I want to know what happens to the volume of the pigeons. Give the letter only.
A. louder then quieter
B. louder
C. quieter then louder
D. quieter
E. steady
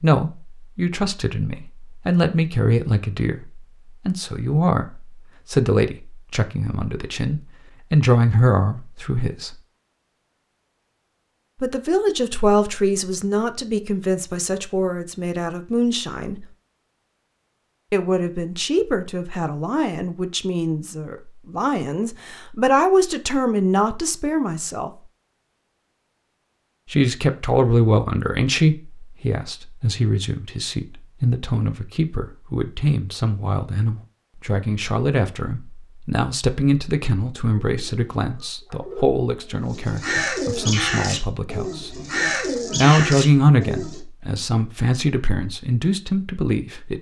B.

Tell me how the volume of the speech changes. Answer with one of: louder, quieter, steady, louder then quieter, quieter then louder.
steady.